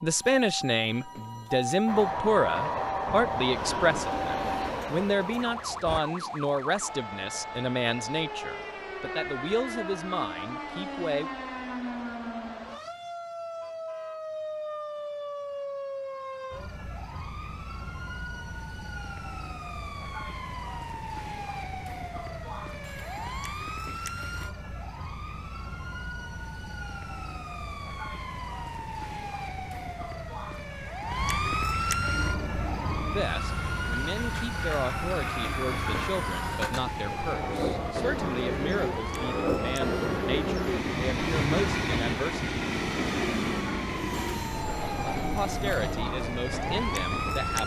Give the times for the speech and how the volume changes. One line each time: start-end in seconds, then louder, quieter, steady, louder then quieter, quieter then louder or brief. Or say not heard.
0.0-11.3 quieter
33.1-42.5 steady
45.2-47.6 brief.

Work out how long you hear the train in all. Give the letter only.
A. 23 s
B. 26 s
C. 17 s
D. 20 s
D.